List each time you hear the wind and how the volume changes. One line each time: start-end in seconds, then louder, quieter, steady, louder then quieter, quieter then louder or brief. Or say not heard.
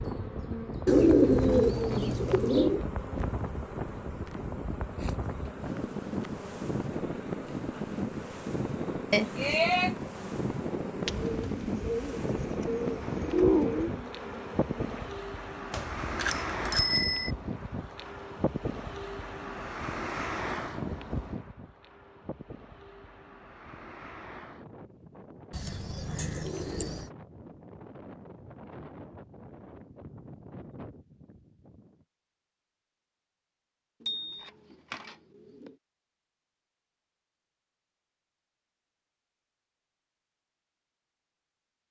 0.0-32.0 quieter.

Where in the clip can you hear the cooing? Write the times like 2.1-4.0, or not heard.
0.8-2.9, 11.1-13.9, 25.5-27.1, 34.0-35.8.